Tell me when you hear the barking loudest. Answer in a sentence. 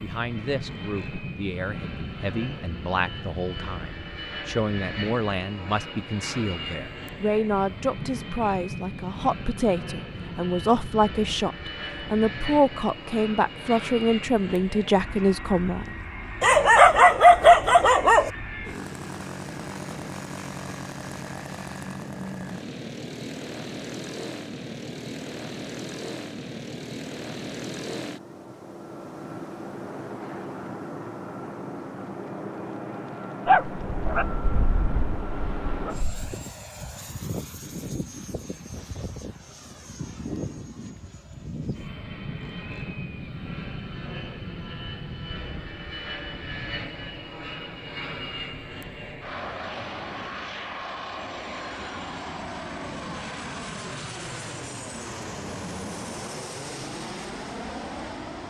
The loudest moment of the barking is at 17 seconds.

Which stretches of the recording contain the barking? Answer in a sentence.
You can hear the barking from 16.4 to 18.3 s and from 33.5 to 36.4 s.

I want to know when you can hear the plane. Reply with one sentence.
You can hear the plane from 0.0 to 58.4 s.